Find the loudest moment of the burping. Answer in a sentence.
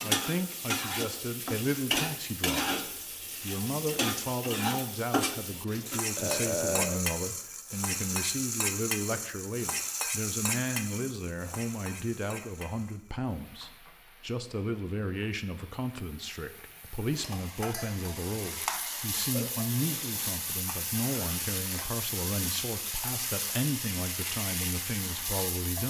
The volume of the burping peaks at 7 seconds.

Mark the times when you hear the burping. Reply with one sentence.
The burping can be heard from 6.2 to 7.0 s and from 19.3 to 20.4 s.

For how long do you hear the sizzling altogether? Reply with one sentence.
The sizzling can be heard for 26 seconds in total.